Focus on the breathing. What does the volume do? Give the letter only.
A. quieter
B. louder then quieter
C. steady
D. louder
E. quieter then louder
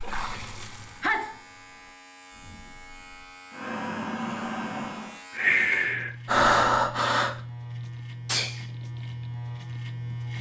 D.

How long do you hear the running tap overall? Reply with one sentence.
You can hear the running tap for 2 seconds altogether.